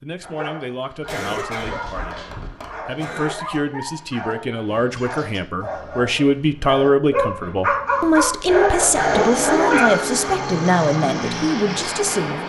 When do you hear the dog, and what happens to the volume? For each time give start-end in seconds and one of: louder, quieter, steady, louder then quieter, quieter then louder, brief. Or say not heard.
0.2-10.0 louder.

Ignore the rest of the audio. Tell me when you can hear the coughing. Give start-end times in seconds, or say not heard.
1.1-3.6.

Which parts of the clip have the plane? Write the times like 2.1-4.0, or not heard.
7.8-12.4.